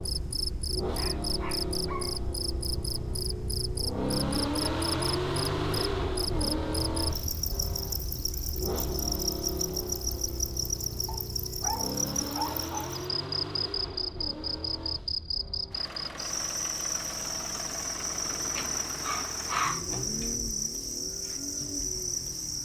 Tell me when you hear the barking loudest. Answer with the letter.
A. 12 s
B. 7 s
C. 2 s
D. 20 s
D.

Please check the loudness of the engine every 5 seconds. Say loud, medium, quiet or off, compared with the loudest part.
loud, loud, medium, medium, medium.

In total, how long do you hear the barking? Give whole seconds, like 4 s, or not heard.
5 s.